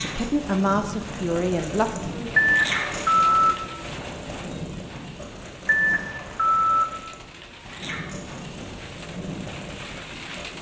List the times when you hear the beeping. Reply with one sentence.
The beeping can be heard from 2.4 to 3.5 s and from 5.7 to 6.8 s.